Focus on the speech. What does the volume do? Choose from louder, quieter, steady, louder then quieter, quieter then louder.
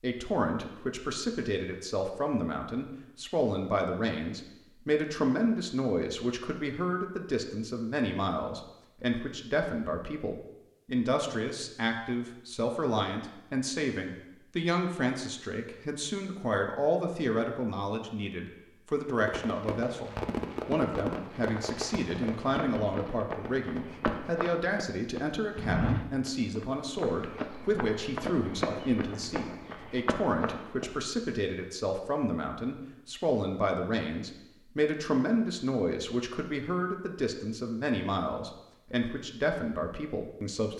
steady.